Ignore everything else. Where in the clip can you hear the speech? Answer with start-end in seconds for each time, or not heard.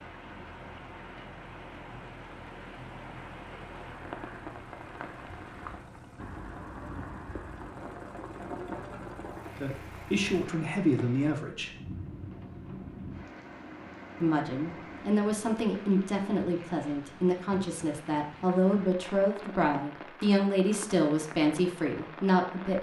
9.6-11.7, 14.2-22.7.